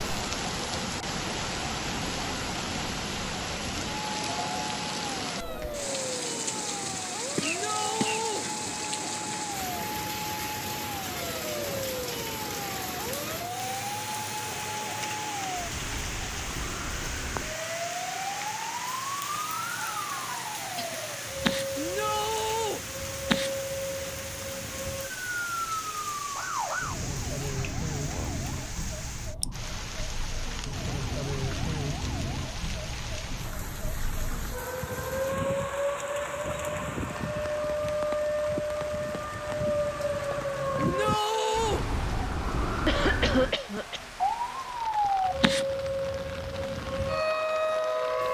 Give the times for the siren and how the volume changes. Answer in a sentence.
You can hear the siren from 0.0 to 48.2 s, getting louder.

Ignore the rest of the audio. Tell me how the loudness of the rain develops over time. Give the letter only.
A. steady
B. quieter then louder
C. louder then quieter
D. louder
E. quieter
E.